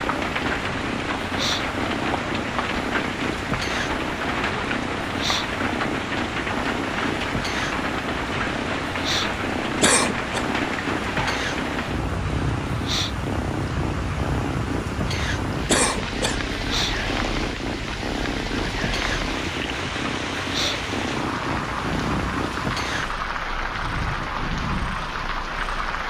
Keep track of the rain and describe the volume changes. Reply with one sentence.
The volume of the rain stays about the same.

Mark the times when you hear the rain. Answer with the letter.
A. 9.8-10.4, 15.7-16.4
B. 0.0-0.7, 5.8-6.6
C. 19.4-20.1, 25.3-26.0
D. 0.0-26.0
D.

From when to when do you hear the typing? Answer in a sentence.
The typing can't be heard in this clip.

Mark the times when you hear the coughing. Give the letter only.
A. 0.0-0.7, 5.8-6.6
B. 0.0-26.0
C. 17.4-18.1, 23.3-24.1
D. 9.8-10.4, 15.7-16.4
D.